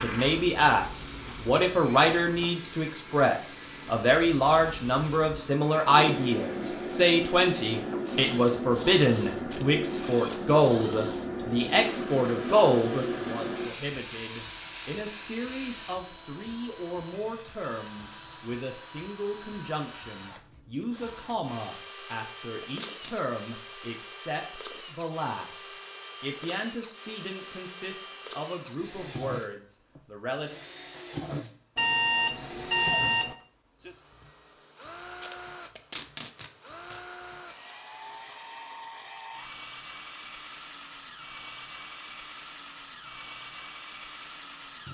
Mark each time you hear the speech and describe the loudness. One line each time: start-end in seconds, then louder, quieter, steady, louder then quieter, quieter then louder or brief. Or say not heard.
0.0-30.5 quieter.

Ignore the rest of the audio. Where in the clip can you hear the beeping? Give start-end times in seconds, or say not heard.
1.5-2.5, 31.8-33.4.